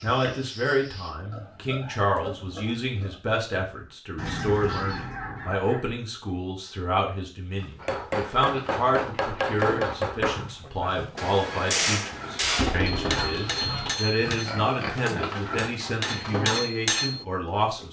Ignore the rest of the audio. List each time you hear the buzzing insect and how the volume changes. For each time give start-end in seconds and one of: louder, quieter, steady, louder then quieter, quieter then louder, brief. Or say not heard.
not heard.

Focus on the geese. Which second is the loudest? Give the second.
13 s.